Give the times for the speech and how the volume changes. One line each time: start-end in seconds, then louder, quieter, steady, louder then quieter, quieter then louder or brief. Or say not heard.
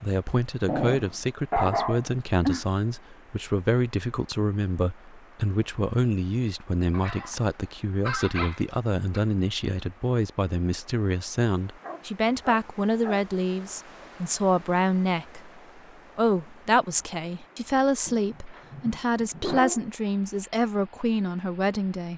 0.0-22.1 steady.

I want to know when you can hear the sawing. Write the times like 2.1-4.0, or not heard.
not heard.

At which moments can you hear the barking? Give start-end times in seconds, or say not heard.
0.7-2.6, 6.9-9.2, 11.8-13.2, 18.1-19.9.